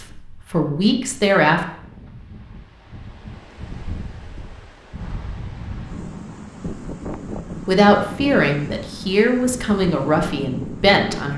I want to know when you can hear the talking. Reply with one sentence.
The talking can be heard from 0.0 to 1.6 s and from 7.7 to 11.3 s.